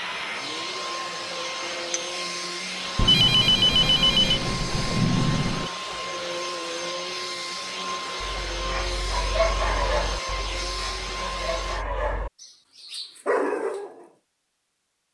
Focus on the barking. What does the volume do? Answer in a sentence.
The loudness of the barking goes down, then up.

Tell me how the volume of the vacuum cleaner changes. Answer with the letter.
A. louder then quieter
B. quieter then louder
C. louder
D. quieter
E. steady
E.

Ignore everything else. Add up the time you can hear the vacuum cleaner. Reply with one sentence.
The vacuum cleaner can be heard for 12 seconds in total.